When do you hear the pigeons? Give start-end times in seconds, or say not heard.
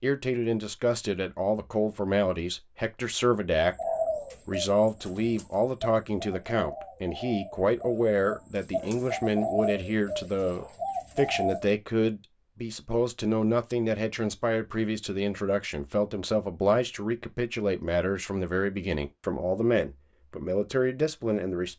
3.5-11.7.